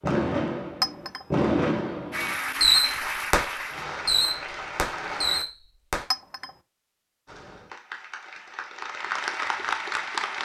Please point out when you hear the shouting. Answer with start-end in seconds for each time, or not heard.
not heard.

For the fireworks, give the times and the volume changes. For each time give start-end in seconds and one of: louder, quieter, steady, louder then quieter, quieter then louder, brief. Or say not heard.
0.0-6.0 louder then quieter.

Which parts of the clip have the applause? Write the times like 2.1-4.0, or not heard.
2.1-5.5, 7.2-10.3.